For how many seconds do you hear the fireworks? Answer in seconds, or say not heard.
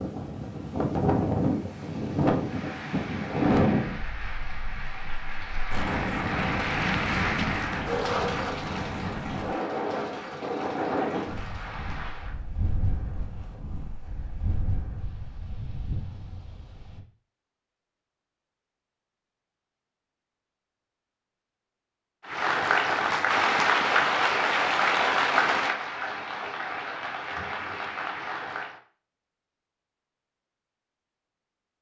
not heard.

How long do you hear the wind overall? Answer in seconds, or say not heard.
17 s.